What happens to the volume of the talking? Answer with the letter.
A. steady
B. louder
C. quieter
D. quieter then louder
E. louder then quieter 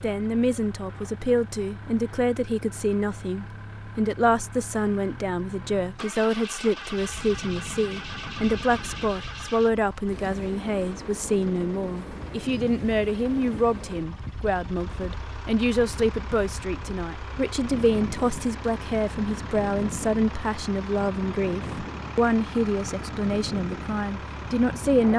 A.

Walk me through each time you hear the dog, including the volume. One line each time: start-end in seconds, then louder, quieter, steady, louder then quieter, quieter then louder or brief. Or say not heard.
not heard.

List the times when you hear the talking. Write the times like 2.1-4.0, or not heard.
0.0-25.1.